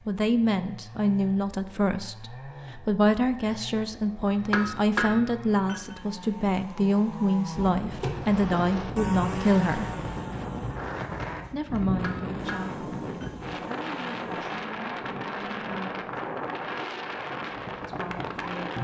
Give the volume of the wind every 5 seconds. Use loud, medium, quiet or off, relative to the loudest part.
off, loud, loud, loud.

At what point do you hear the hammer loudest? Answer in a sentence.
The volume of the hammer peaks at 5 seconds.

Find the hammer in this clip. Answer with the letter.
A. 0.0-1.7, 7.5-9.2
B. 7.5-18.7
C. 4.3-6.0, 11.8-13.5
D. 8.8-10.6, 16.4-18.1
C.